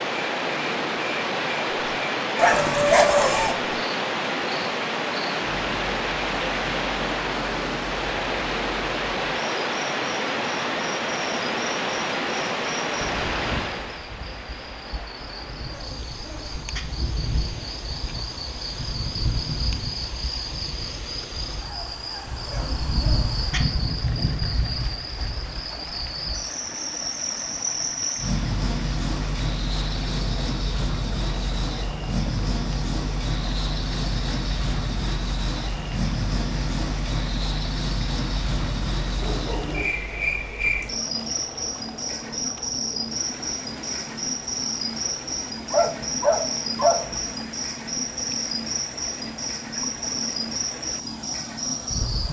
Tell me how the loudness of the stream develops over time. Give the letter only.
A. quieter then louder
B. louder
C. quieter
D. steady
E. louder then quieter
C.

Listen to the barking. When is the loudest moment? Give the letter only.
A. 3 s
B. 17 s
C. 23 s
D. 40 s
A.